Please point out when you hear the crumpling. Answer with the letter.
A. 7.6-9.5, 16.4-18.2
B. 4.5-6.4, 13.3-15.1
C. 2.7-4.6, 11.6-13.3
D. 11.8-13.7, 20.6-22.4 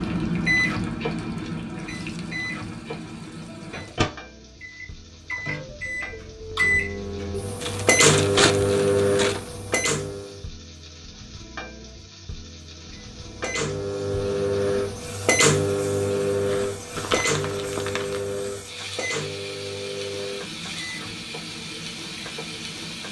A.